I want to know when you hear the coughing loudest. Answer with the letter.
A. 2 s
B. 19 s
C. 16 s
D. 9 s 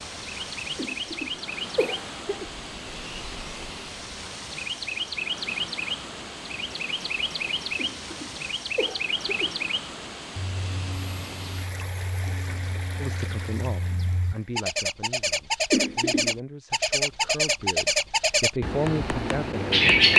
C.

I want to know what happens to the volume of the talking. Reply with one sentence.
The volume of the talking goes down, then up.